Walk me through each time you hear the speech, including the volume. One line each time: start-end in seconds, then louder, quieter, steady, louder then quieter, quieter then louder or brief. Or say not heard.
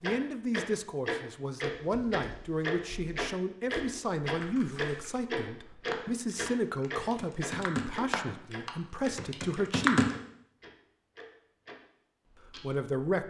0.0-10.0 steady
12.5-13.2 brief.